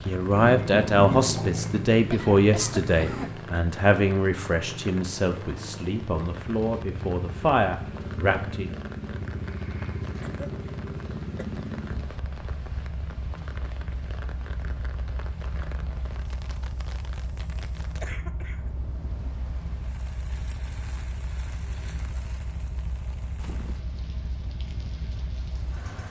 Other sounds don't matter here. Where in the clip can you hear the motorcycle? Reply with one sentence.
The motorcycle can be heard from 0.0 to 26.0 s.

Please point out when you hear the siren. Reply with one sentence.
The siren can't be heard in this clip.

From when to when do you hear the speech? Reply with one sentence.
The speech can be heard from 0.1 to 8.7 s.